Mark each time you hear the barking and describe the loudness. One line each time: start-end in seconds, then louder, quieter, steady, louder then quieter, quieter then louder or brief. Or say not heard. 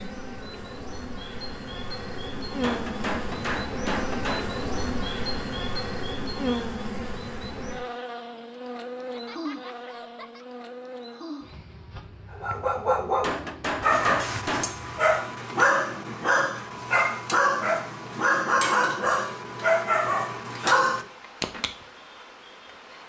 12.3-21.7 steady.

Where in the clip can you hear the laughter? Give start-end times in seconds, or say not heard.
8.9-10.4.